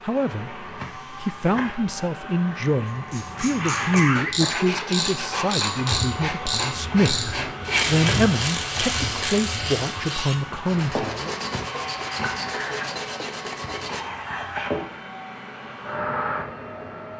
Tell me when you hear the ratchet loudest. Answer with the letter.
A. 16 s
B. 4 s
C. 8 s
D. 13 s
C.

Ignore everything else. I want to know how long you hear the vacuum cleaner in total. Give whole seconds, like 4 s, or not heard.
17 s.